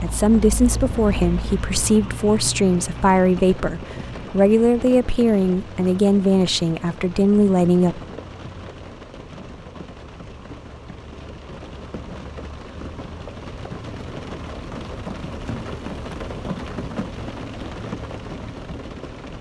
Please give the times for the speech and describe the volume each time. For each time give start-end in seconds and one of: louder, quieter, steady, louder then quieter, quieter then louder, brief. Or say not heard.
0.0-8.0 steady.